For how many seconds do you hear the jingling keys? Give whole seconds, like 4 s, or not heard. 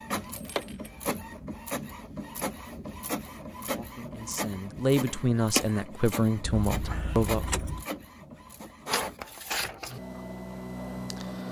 2 s.